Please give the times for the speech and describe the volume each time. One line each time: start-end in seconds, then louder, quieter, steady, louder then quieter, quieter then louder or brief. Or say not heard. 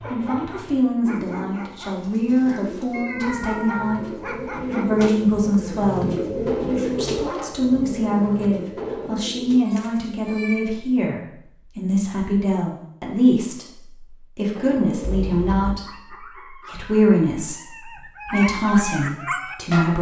0.1-19.9 steady.